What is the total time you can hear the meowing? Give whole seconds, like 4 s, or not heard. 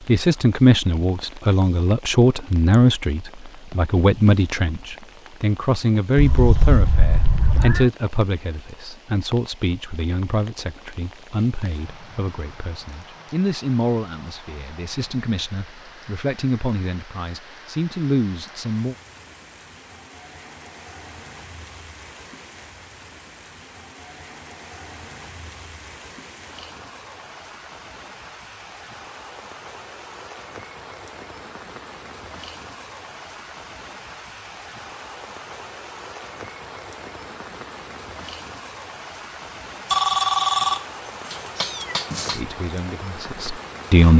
3 s.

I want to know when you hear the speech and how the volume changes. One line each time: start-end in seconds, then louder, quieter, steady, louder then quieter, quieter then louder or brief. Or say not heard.
0.1-18.9 quieter
42.4-44.1 brief.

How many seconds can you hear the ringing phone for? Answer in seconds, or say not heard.
2 s.